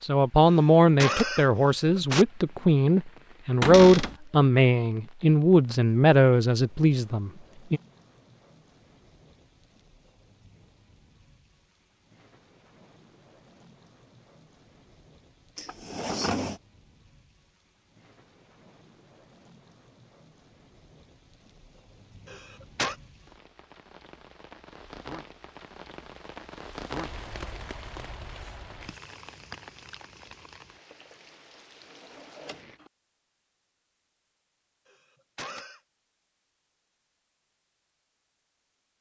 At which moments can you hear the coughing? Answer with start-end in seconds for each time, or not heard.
0.5-2.2, 22.2-22.9, 34.9-35.8.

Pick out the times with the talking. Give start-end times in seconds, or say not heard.
0.0-7.8.